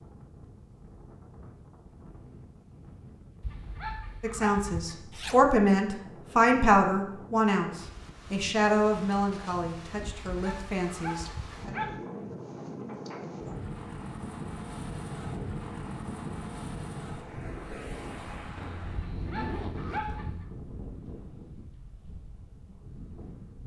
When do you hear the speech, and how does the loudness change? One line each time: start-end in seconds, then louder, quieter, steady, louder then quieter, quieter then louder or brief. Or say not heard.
4.2-11.8 quieter.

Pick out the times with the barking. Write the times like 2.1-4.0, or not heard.
3.4-5.0, 10.2-12.0, 18.9-20.4.